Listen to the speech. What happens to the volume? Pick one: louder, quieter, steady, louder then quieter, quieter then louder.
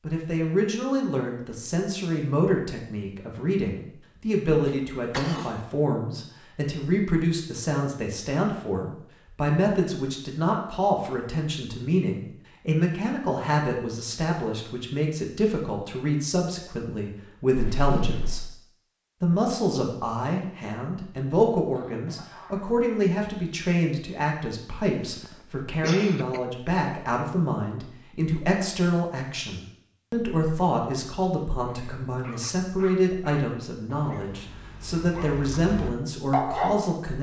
steady.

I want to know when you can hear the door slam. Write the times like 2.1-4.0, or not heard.
17.6-18.4.